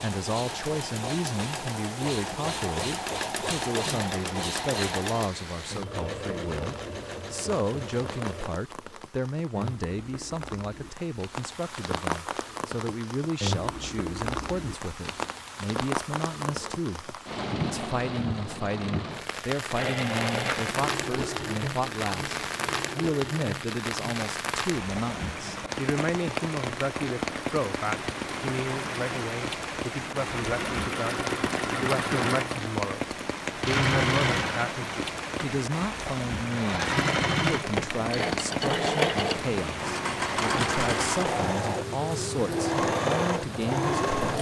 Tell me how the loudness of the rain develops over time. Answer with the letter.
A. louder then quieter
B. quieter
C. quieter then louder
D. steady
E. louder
E.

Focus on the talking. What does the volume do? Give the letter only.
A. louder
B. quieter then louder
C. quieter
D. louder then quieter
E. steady
E.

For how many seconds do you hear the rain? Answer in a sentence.
You can hear the rain for 44 seconds altogether.